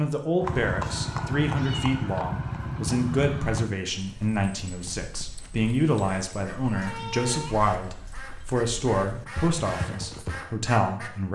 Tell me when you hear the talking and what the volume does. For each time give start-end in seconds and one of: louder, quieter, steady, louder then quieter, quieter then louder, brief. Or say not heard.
0.0-11.3 steady.